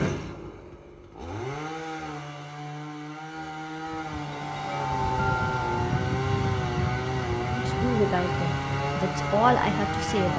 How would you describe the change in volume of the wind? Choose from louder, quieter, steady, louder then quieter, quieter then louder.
quieter.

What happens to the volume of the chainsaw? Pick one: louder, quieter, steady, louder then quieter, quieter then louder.
louder.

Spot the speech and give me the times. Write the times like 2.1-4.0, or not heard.
7.5-10.3.